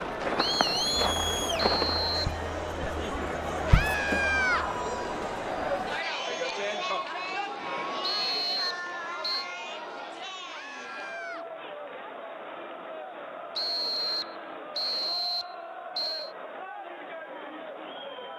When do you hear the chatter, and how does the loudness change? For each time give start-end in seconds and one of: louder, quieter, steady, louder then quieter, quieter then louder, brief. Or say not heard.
0.0-18.3 quieter.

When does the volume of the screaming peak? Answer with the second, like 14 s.
4 s.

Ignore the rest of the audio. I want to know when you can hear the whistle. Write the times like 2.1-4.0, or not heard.
0.4-2.4, 8.0-9.4, 13.6-16.3.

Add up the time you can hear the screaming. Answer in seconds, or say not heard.
2 s.